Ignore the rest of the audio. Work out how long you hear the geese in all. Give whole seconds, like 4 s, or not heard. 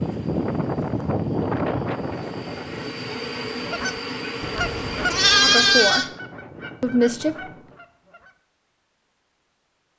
5 s.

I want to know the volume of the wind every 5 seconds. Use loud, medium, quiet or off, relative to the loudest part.
loud, quiet.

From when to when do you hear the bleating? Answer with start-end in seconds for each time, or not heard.
4.5-6.1.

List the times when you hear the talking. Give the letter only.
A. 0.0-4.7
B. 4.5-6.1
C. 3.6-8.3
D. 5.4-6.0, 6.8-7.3
D.